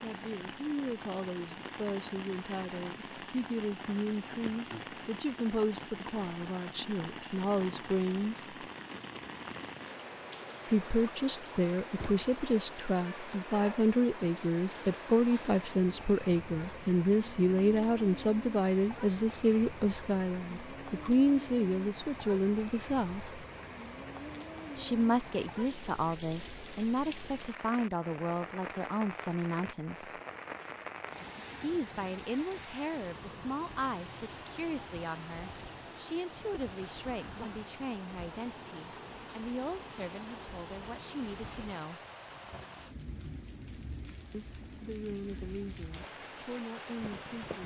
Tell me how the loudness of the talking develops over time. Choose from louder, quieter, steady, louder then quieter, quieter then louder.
louder then quieter.